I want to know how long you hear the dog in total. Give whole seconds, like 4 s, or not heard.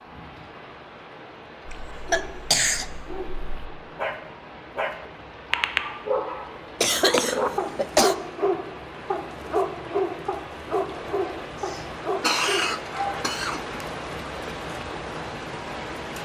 11 s.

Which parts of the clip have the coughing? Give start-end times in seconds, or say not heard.
1.7-2.9, 6.8-8.2, 11.7-13.6.